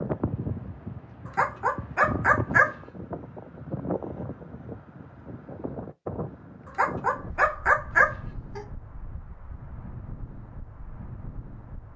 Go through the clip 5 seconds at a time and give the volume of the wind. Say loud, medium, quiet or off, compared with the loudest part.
loud, medium, medium.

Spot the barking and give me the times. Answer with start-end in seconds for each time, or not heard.
1.2-2.8, 6.7-8.6.